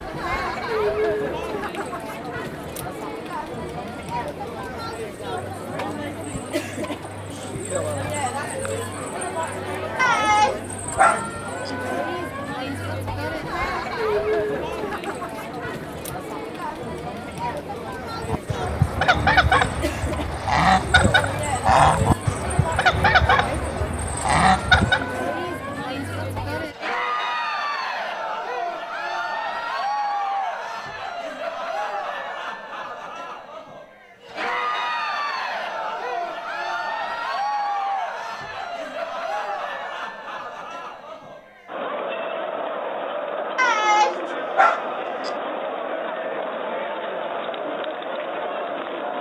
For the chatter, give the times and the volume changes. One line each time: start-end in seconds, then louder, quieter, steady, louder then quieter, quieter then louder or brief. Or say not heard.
0.0-49.1 steady.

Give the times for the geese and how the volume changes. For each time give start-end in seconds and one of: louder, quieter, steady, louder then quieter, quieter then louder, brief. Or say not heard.
18.1-25.1 steady.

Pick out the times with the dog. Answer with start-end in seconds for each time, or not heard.
9.9-11.7, 43.5-45.3.